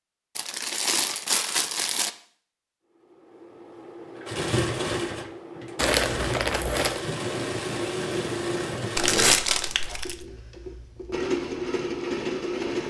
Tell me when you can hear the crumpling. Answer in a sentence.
You can hear the crumpling from 0.3 to 2.1 s, from 5.8 to 7.0 s and from 8.9 to 10.2 s.